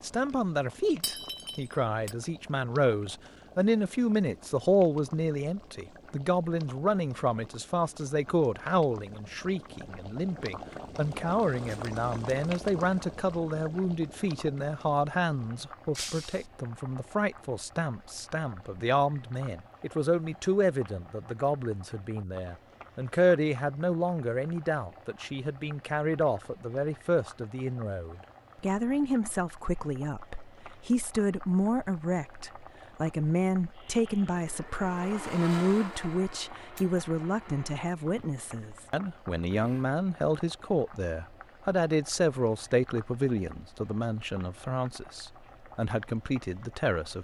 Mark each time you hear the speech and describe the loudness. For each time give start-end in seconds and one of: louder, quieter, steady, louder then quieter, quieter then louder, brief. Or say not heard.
0.0-47.1 steady.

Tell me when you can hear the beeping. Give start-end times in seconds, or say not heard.
not heard.